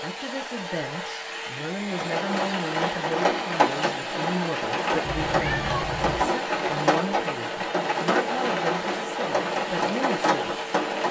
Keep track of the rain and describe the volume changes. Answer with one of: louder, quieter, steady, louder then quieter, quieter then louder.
steady.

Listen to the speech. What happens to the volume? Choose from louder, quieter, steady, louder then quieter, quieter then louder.
steady.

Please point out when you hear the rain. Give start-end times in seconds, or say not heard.
1.9-11.0.